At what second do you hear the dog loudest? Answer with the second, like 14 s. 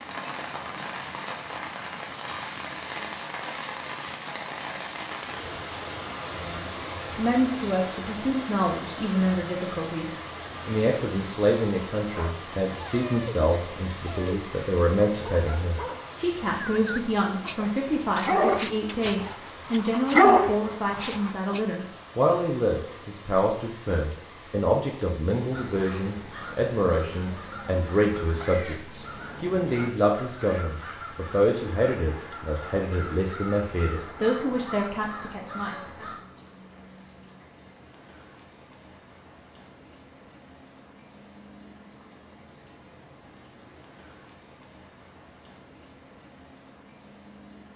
20 s.